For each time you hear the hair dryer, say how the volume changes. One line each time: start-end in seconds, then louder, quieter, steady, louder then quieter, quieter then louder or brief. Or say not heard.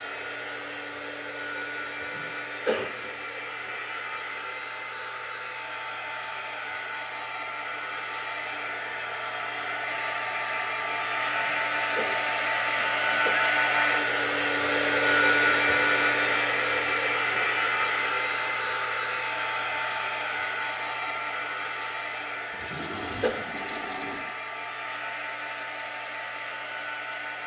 0.0-27.4 louder then quieter.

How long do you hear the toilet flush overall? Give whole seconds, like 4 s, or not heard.
2 s.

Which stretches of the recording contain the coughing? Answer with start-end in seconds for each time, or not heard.
2.1-3.1, 11.4-13.4, 22.7-23.4.